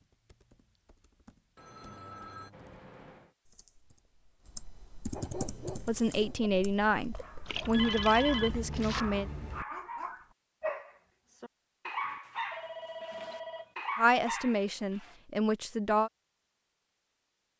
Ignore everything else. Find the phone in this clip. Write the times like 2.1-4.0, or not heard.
1.6-3.4, 7.6-9.7, 12.0-13.8.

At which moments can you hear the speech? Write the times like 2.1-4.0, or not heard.
5.8-9.3, 13.9-16.1.